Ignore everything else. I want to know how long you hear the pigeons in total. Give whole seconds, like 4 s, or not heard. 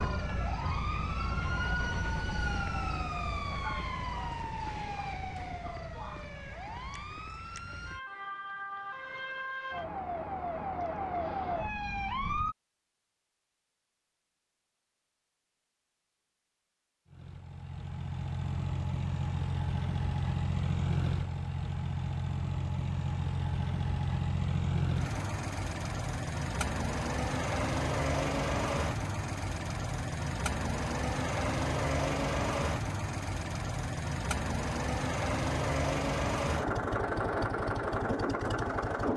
not heard.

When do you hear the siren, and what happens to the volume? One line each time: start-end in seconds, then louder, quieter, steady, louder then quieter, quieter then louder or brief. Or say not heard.
0.0-12.6 quieter then louder.